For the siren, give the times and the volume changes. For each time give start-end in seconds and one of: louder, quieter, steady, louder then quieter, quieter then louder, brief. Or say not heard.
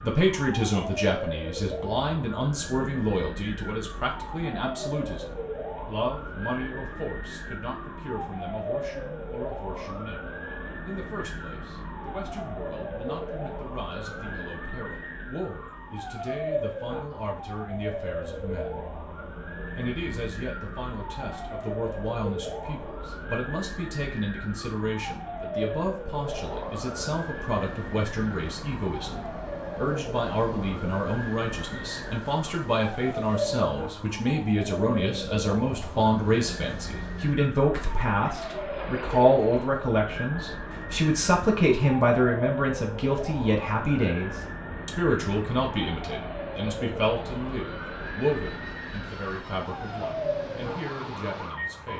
0.0-51.9 steady.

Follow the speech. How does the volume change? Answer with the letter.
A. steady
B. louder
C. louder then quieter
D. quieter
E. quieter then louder
E.